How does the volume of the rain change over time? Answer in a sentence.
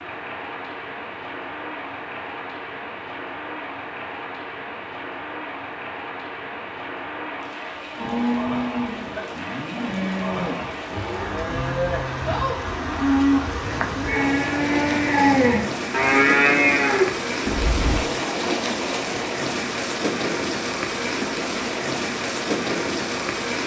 The loudness of the rain goes up.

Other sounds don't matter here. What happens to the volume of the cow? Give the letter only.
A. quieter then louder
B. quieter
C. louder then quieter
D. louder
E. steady
D.